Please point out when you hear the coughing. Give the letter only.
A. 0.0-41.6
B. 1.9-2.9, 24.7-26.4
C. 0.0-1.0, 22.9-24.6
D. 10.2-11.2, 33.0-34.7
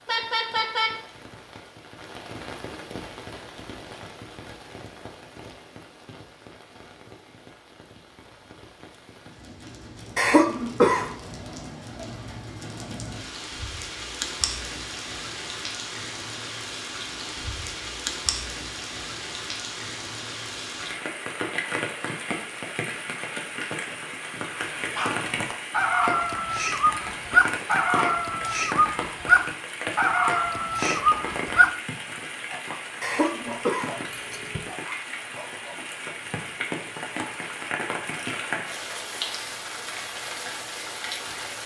D.